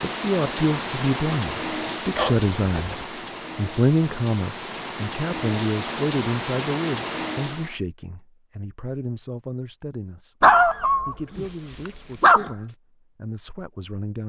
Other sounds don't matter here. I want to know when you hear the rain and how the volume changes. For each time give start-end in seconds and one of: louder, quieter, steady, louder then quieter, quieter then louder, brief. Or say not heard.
0.0-7.8 quieter then louder.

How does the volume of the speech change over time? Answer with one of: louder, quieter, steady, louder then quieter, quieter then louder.
quieter.